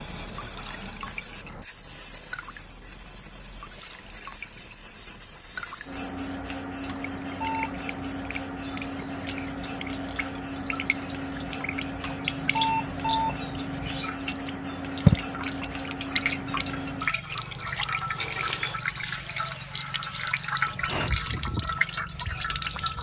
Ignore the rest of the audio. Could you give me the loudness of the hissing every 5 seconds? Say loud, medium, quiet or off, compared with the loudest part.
medium, loud, loud, loud, loud.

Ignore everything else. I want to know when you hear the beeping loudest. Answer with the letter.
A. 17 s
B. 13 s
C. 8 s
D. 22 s
B.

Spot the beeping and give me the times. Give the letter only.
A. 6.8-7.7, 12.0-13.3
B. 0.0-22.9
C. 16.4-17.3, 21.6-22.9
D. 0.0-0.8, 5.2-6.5
A.